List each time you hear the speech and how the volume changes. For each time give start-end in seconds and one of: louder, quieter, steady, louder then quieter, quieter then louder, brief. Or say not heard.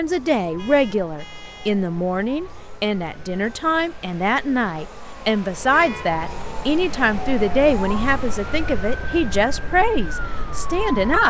0.0-11.2 steady.